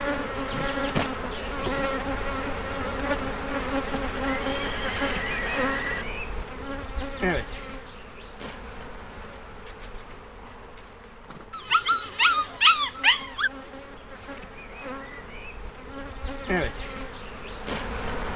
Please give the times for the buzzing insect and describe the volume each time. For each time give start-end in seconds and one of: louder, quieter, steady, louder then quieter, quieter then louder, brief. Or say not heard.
0.0-18.3 quieter then louder.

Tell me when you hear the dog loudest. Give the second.
13 s.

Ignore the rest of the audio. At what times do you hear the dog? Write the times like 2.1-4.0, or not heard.
11.5-13.5.